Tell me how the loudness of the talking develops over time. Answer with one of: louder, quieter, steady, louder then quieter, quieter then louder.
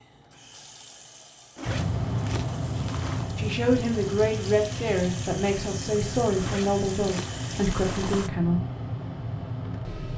steady.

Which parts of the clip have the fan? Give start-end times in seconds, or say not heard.
1.6-10.1.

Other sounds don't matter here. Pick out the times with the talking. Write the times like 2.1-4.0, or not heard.
3.4-8.6.